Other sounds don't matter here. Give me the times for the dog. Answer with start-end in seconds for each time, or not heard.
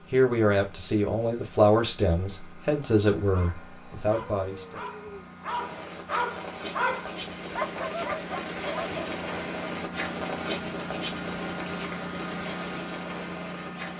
3.3-9.0.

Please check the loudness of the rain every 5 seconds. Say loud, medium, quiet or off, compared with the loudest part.
off, loud, loud.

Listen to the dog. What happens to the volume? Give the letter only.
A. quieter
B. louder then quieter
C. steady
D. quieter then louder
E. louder
E.